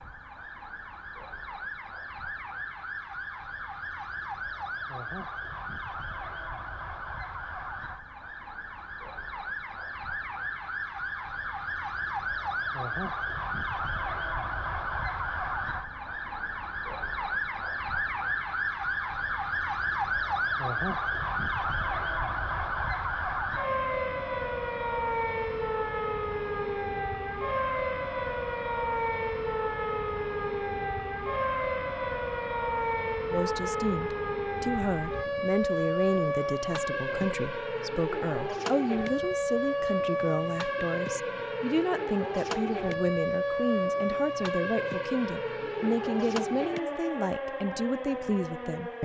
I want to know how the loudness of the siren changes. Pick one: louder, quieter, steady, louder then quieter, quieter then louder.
louder.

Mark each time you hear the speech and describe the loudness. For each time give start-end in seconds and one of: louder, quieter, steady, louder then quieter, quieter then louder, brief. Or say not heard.
33.3-49.0 steady.